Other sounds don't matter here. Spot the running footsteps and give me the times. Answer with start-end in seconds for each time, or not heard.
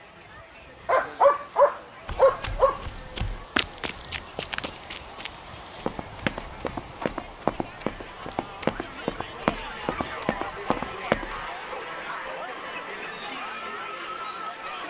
2.0-11.4.